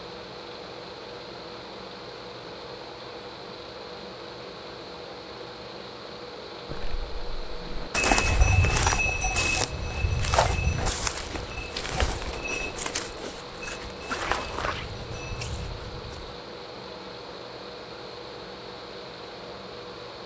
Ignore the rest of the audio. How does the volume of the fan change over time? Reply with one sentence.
The loudness of the fan stays about the same.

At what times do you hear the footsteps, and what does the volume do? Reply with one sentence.
You can hear the footsteps from 6.7 to 16.4 s, getting quieter.